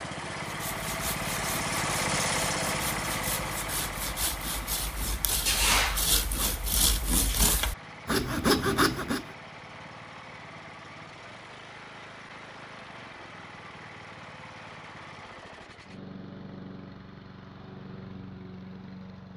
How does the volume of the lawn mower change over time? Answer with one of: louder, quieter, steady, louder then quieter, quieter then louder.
quieter.